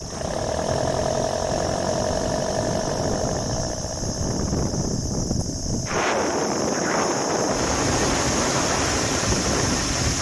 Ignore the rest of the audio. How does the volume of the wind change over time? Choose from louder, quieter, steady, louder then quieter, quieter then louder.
louder.